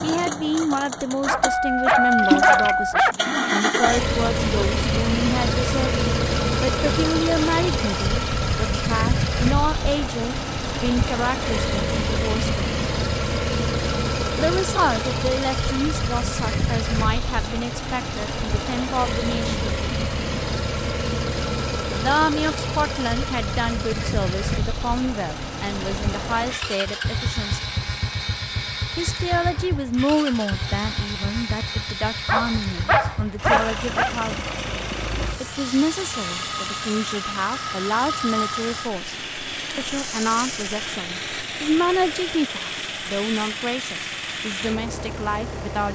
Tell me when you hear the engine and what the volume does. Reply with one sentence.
You can hear the engine from 0.0 to 45.9 s, getting quieter.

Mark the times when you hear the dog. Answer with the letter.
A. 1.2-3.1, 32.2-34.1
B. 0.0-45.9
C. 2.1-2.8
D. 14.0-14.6
A.